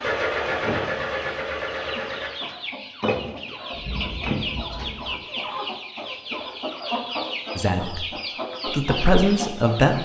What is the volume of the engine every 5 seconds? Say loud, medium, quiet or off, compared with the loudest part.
loud, off.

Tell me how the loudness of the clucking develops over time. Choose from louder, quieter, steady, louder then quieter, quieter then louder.
louder.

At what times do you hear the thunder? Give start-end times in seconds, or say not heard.
3.7-5.2.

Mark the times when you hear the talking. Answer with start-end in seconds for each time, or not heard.
7.5-8.1, 8.7-9.9.